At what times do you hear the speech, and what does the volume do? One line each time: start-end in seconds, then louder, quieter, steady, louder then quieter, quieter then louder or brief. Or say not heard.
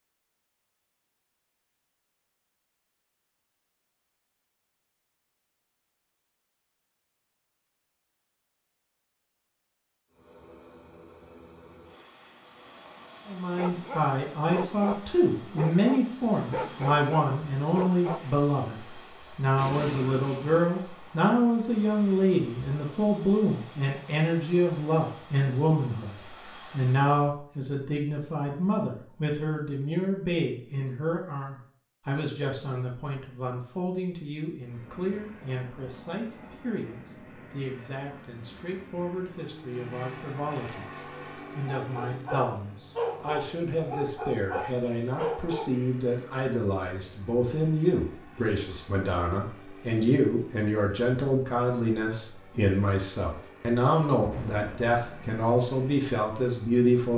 13.2-57.1 quieter then louder.